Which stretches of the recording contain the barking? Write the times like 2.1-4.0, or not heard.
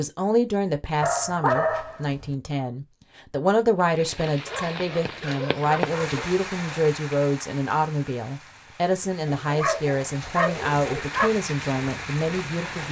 1.0-2.4, 4.5-6.2, 9.4-11.3.